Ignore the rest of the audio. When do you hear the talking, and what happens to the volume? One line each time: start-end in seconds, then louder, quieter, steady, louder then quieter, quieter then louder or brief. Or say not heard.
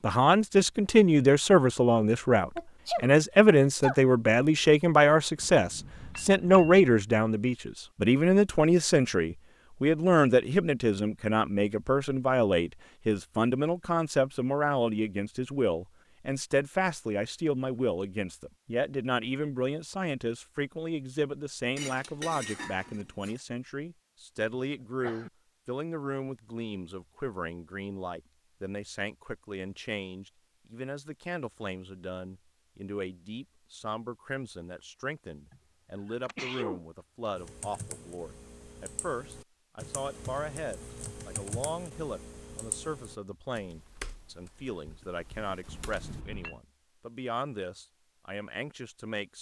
0.0-49.3 quieter.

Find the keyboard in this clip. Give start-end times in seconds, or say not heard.
37.4-46.2.